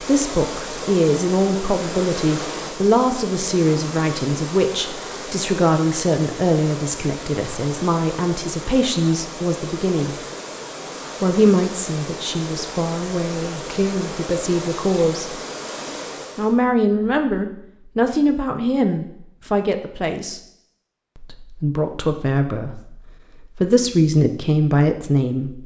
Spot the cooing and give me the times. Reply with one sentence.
You can't hear the cooing here.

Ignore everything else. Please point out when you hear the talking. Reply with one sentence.
You can hear the talking from 0.1 to 10.2 s, from 11.2 to 15.3 s, from 16.4 to 20.4 s and from 21.1 to 25.6 s.